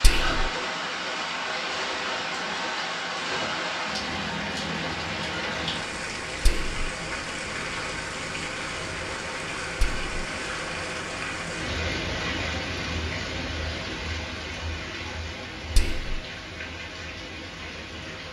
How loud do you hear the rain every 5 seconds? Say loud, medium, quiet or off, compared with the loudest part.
loud, loud, loud, medium.